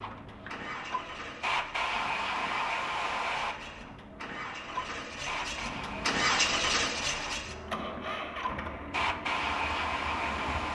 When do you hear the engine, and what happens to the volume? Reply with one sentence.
You can hear the engine from 0.0 to 10.7 s, getting louder then quieter.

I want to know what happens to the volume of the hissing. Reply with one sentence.
The loudness of the hissing goes down, then up.